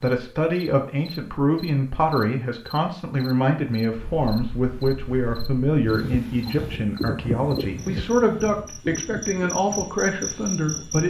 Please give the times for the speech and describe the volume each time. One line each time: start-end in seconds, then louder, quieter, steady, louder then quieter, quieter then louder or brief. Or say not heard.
0.0-11.0 steady.